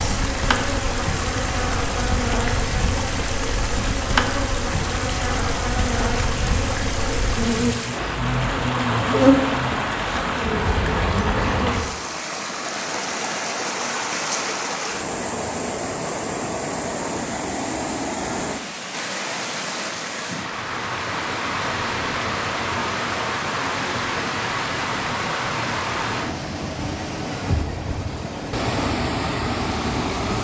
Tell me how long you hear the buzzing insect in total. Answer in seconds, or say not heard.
12 s.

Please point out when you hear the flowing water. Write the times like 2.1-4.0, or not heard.
0.0-30.4.